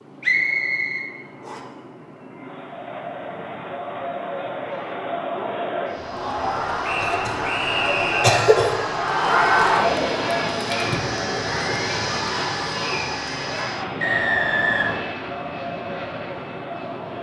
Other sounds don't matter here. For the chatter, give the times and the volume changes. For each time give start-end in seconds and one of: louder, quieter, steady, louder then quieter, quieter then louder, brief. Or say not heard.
2.4-17.1 louder then quieter.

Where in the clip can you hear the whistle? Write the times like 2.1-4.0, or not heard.
0.2-1.6, 6.8-8.4, 14.0-15.1.